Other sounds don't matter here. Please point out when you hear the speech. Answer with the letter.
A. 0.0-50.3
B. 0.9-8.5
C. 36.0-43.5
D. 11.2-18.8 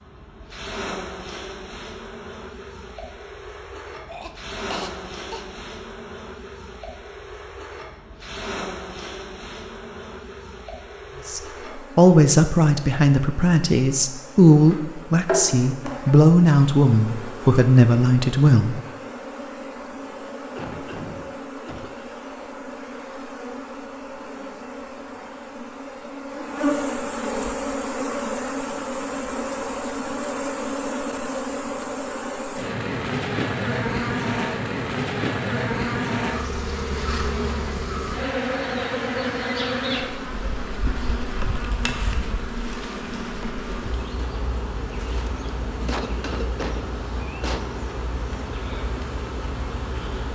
D.